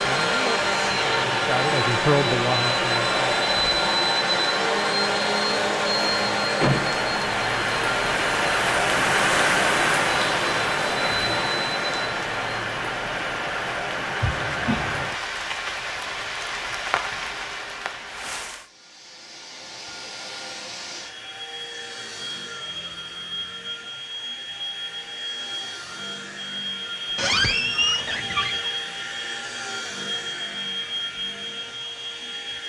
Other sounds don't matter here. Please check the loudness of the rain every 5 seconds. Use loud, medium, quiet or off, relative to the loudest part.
medium, loud, loud, medium, off, off, off.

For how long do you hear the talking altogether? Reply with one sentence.
The talking can be heard for 3 seconds in total.